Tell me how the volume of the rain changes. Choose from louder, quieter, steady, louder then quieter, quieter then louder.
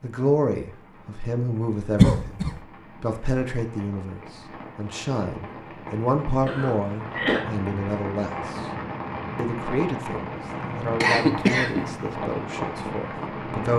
louder.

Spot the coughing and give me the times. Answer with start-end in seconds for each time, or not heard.
1.9-2.5, 6.5-7.5, 11.0-11.8.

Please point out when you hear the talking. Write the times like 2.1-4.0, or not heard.
0.0-8.7, 9.3-13.7.